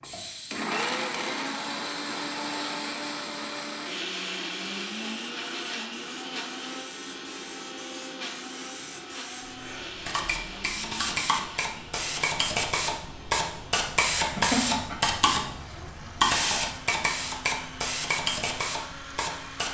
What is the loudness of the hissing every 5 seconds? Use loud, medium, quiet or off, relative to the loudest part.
quiet, quiet, loud, loud.